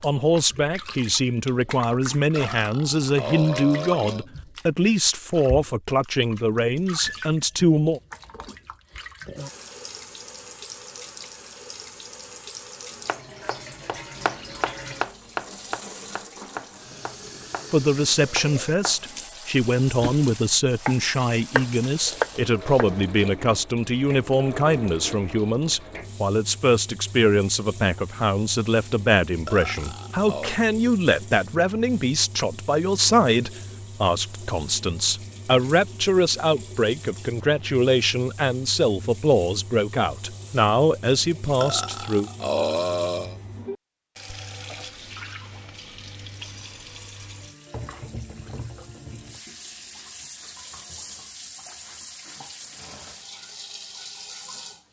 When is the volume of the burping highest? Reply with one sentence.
The loudest moment of the burping is at 43 seconds.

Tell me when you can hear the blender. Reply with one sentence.
You can't hear the blender here.